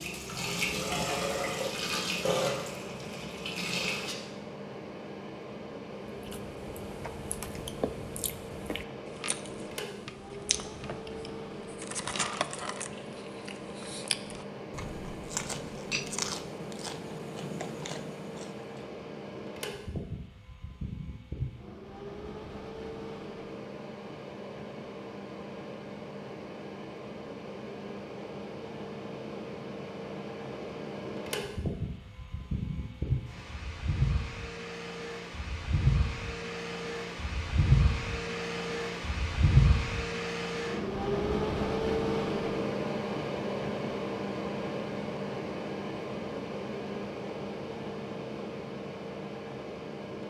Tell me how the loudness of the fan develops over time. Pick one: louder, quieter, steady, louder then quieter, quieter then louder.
louder.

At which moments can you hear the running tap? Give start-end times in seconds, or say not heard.
0.0-4.2.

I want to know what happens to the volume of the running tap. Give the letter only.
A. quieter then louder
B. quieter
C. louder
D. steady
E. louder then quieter
B.